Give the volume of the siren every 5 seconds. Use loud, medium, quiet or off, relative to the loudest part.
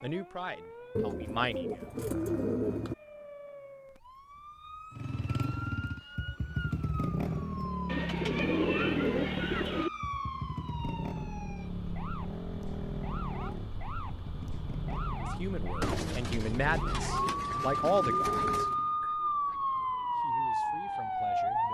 quiet, quiet, quiet, loud, loud.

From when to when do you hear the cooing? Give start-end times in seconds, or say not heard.
0.9-3.0, 7.8-9.9, 15.8-18.8.